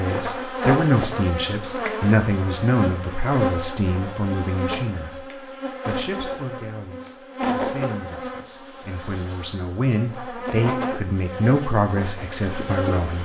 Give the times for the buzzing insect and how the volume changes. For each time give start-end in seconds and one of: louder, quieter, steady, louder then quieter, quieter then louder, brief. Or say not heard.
0.0-13.2 quieter then louder.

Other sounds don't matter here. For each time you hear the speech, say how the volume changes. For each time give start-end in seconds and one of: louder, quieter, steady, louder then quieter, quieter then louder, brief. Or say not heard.
0.0-13.2 quieter then louder.